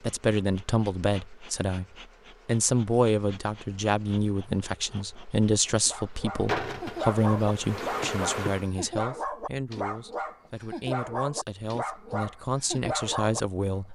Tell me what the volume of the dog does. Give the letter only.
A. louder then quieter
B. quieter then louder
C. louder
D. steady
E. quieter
D.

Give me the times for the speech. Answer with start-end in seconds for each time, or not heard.
0.0-1.9, 2.5-13.8.